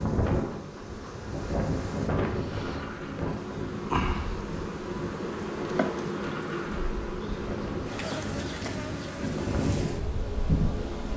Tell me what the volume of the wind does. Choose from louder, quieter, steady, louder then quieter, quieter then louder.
quieter then louder.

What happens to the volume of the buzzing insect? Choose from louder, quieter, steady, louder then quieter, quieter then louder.
louder then quieter.